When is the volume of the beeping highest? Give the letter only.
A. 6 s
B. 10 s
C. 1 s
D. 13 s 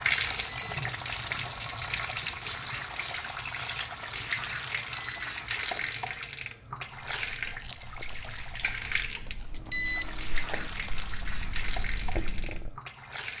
B.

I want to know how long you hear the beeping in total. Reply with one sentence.
You can hear the beeping for 3 seconds altogether.